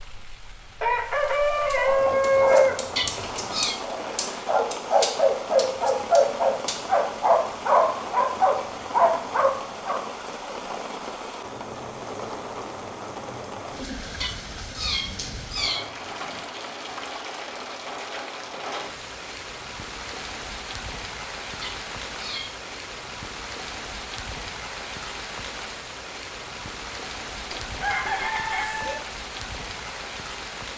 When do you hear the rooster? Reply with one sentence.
The rooster can be heard from 0.8 to 2.8 s and from 27.5 to 29.0 s.